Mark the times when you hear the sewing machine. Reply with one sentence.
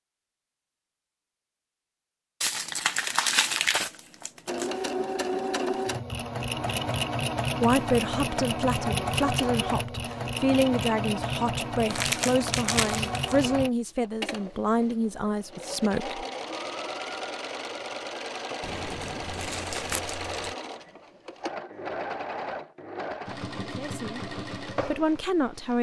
The sewing machine can be heard from 4.5 to 25.7 s.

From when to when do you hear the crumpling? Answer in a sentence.
The crumpling can be heard from 2.4 to 4.9 s, from 11.9 to 13.3 s and from 18.6 to 20.6 s.